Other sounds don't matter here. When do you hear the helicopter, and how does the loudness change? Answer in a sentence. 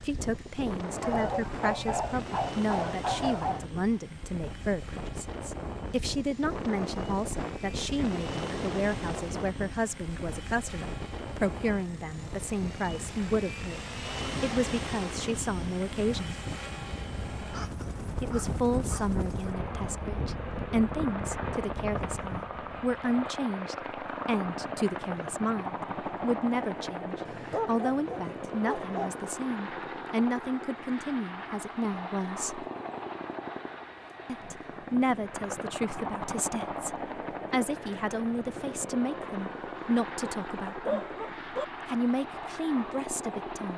You can hear the helicopter from 0.0 to 43.7 s, getting louder.